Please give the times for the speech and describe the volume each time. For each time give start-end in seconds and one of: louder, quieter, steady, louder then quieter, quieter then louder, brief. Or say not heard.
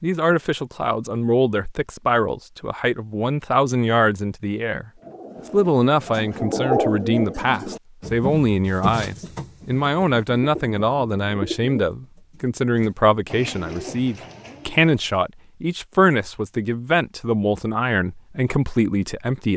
0.0-19.5 steady.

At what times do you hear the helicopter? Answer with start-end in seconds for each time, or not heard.
not heard.